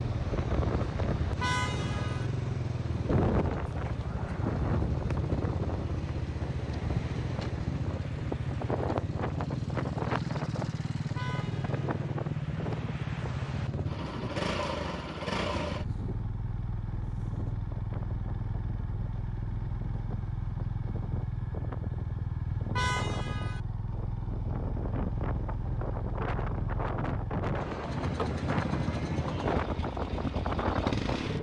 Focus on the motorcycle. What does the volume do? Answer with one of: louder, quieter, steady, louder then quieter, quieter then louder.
steady.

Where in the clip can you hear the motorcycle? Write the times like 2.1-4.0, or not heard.
0.0-31.3.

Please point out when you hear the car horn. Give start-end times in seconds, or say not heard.
1.4-2.3, 11.2-11.8, 22.8-23.6.